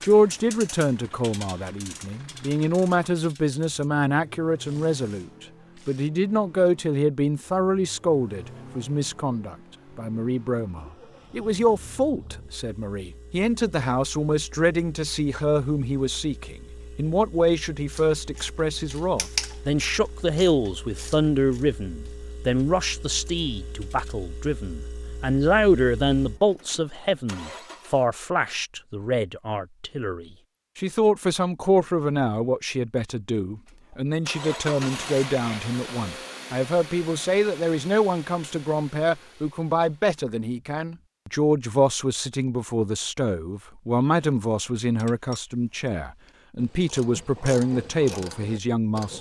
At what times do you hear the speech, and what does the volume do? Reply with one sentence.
The speech can be heard from 0.0 to 49.1 s, at a steady volume.